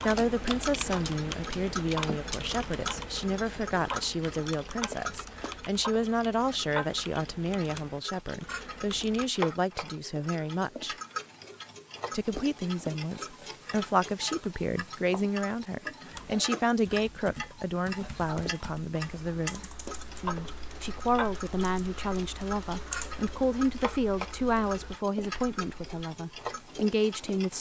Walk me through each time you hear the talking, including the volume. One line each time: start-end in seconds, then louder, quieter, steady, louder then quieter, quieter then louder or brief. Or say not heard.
0.0-10.9 steady
12.1-27.5 steady.